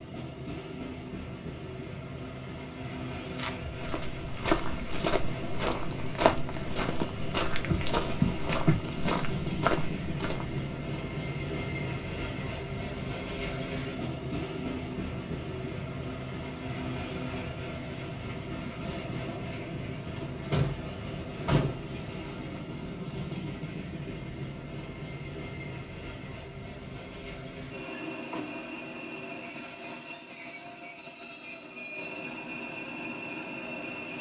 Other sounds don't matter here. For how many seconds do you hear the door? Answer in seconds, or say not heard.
3 s.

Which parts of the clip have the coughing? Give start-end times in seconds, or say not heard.
not heard.